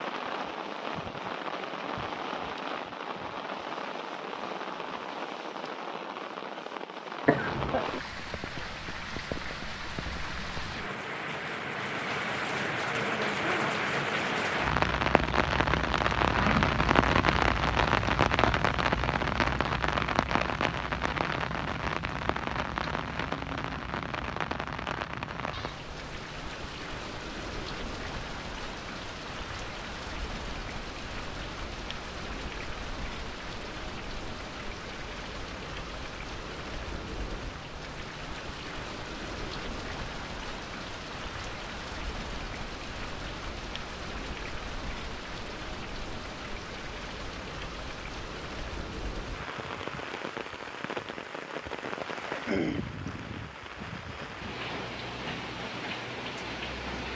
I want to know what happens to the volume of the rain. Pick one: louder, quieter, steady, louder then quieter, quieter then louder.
louder then quieter.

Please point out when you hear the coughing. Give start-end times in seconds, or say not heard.
7.2-7.8.